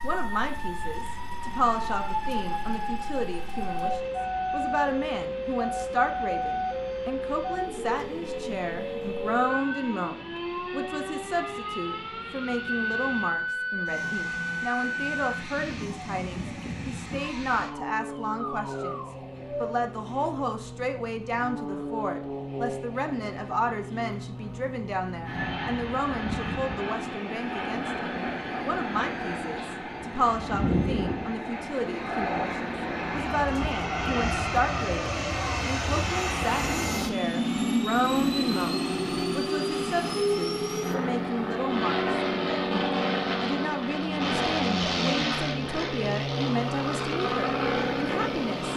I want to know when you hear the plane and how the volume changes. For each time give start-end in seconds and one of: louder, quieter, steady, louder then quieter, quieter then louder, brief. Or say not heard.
0.0-48.7 louder.